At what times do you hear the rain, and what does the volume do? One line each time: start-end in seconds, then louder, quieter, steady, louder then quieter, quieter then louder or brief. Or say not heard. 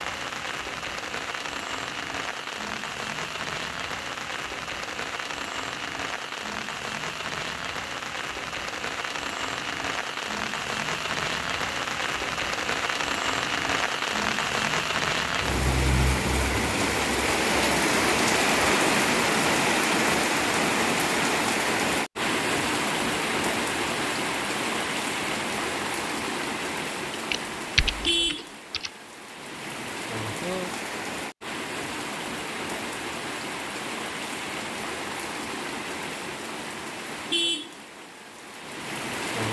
0.0-39.4 louder then quieter.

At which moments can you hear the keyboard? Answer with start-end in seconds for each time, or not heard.
27.1-28.9.